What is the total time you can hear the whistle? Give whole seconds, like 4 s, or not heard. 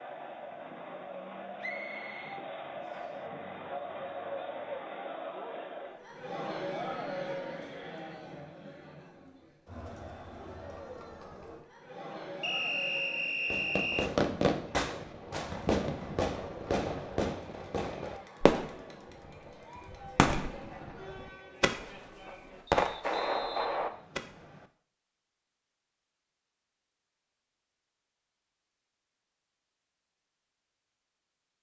5 s.